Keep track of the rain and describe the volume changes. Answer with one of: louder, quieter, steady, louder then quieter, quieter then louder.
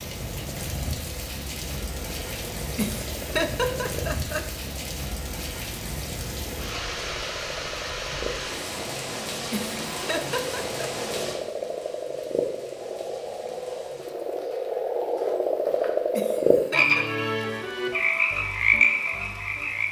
quieter.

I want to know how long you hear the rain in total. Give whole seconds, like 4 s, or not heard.
20 s.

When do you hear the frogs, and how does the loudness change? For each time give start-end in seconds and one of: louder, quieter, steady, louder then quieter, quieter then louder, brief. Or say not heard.
0.0-19.8 louder.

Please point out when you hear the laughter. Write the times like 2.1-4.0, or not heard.
2.8-4.5, 9.5-10.8, 16.1-17.1.